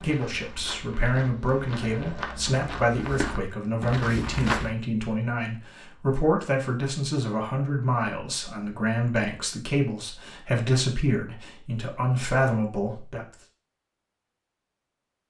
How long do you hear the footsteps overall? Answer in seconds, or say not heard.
5 s.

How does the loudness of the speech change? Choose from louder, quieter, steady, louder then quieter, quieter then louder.
steady.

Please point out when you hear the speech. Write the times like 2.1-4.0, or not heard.
0.0-13.2.